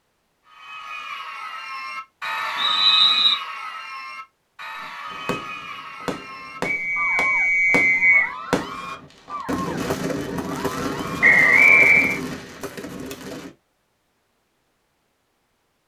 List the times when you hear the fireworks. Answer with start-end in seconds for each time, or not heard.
4.8-13.6.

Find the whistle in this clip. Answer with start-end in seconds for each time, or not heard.
2.5-3.4, 6.6-8.3, 11.2-12.2.